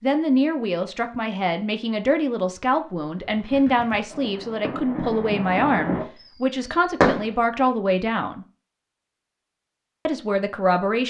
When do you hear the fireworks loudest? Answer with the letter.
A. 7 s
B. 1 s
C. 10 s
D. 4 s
A.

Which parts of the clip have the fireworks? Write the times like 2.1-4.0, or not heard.
3.2-7.3.